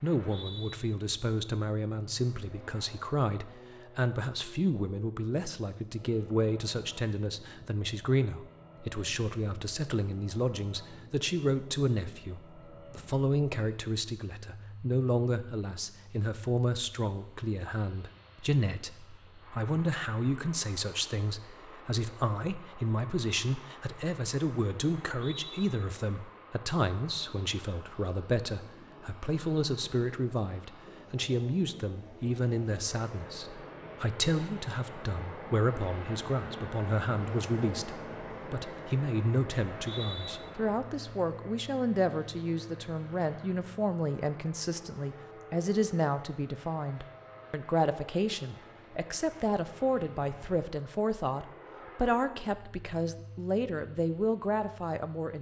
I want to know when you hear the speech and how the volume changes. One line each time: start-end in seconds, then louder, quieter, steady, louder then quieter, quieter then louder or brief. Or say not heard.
0.0-55.3 steady.